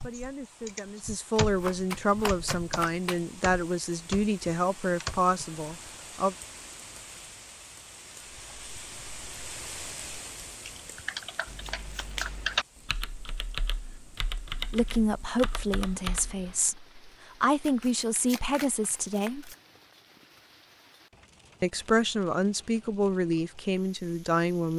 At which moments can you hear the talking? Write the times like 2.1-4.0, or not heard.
0.0-6.3, 14.7-19.5, 21.6-24.7.